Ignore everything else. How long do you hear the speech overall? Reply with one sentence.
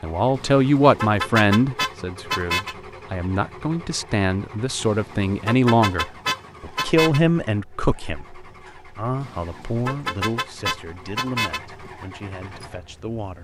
The speech can be heard for 13 seconds in total.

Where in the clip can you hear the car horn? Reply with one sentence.
You can hear the car horn from 0.3 to 2.8 s, from 4.8 to 7.2 s and from 9.2 to 11.6 s.